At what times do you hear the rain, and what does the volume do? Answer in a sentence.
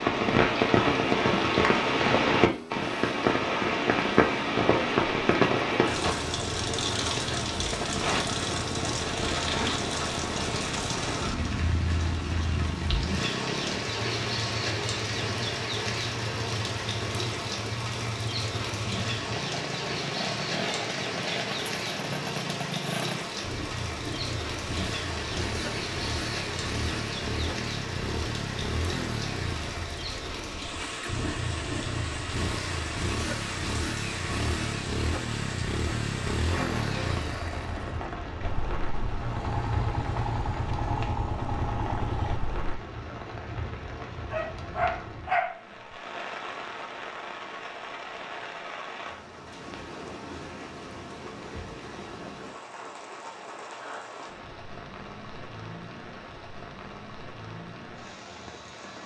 You can hear the rain from 0.0 to 59.0 s, getting quieter.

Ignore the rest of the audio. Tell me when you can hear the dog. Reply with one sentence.
You can hear the dog from 44.3 to 46.0 s.